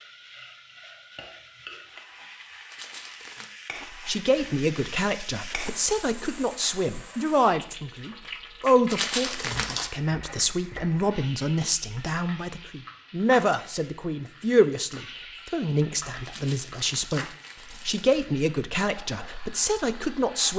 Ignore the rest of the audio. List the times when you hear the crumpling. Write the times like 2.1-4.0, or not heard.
2.7-3.5, 8.8-9.9, 16.2-18.2.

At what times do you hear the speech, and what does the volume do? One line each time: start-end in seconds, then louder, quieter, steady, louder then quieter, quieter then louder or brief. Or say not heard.
4.0-20.5 steady.